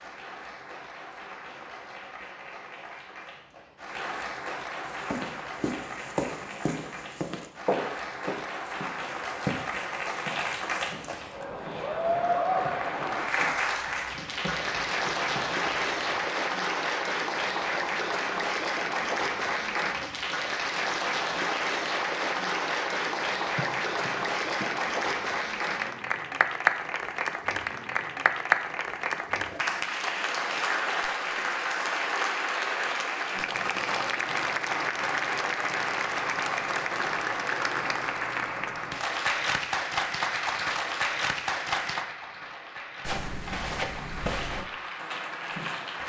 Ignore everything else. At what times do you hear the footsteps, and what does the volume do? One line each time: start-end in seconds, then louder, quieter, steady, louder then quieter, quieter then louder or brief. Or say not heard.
4.8-16.2 quieter
43.0-46.0 brief.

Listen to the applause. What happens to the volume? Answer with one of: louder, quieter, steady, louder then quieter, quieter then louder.
louder.